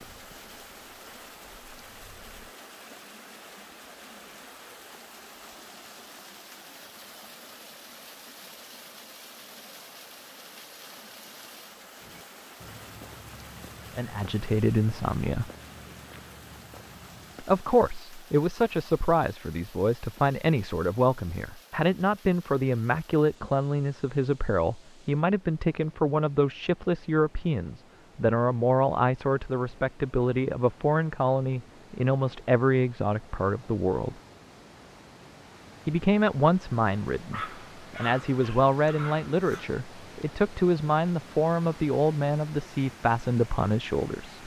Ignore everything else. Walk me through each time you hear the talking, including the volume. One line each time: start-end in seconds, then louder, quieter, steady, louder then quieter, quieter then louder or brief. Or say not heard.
13.9-15.5 brief
17.4-34.1 steady
35.9-44.4 steady.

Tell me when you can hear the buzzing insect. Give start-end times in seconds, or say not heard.
not heard.